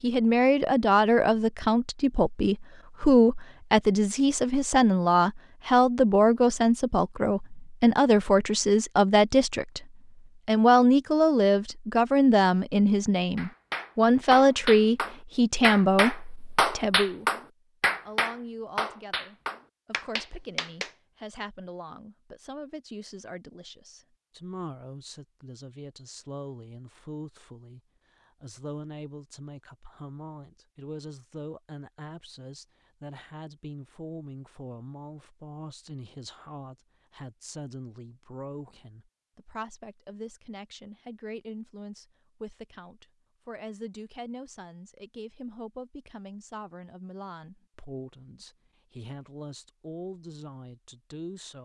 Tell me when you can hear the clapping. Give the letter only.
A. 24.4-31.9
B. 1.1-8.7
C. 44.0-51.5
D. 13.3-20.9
D.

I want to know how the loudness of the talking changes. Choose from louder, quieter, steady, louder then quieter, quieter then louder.
quieter.